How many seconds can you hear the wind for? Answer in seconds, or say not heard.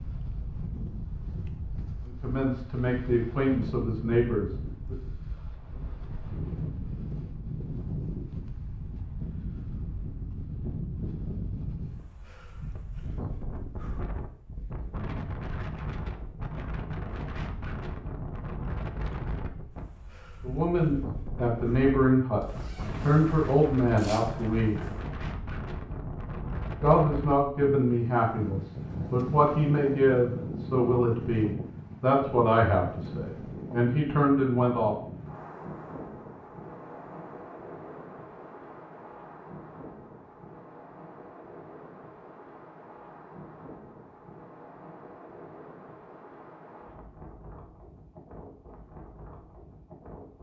50 s.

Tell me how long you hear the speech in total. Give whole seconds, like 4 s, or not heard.
16 s.